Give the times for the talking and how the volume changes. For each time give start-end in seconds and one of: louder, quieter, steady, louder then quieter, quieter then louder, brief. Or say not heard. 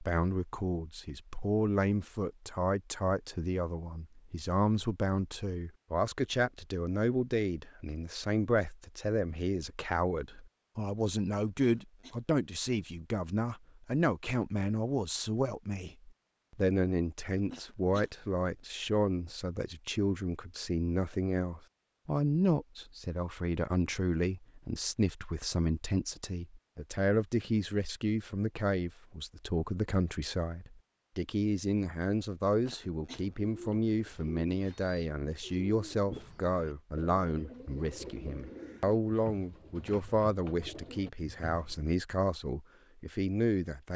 0.0-43.9 steady.